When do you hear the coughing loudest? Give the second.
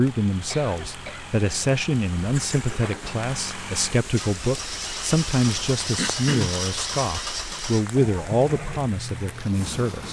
6 s.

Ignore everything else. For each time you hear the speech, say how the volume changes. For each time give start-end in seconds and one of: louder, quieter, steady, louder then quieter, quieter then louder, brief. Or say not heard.
0.0-10.0 steady.